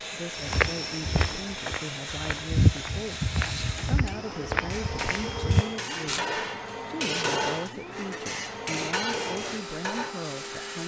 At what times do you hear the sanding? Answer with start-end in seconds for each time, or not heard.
not heard.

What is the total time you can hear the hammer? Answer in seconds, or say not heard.
7 s.